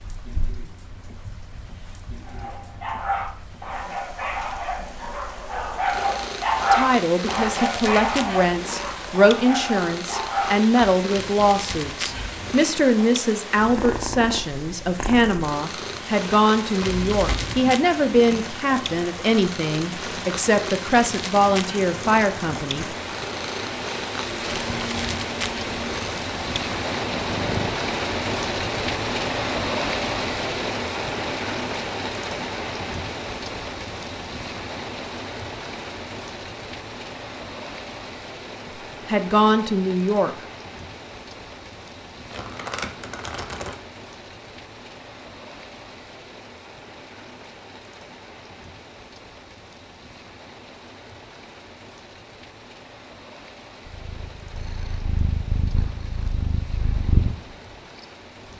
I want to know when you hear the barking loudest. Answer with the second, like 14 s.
7 s.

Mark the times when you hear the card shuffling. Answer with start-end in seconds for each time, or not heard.
16.8-17.7, 24.2-26.0, 42.3-43.8.